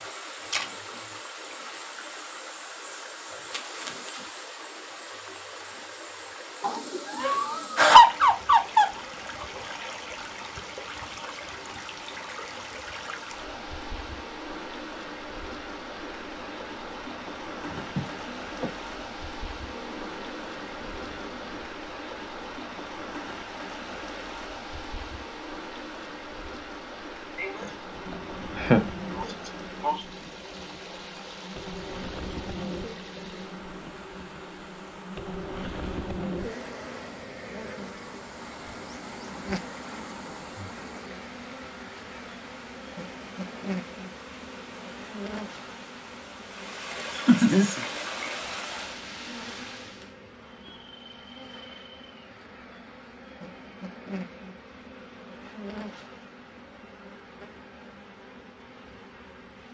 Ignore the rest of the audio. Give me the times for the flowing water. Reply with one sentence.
The flowing water can be heard from 0.0 to 50.1 s.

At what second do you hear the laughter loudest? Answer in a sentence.
The loudest moment of the laughter is at 8 seconds.